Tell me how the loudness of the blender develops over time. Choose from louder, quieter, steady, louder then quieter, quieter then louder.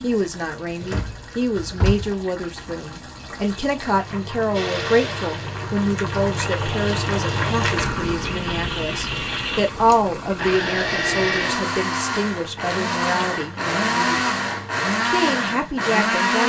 louder.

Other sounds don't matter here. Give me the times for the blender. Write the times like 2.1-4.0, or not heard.
4.5-16.4.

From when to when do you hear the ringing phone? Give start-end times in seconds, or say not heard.
not heard.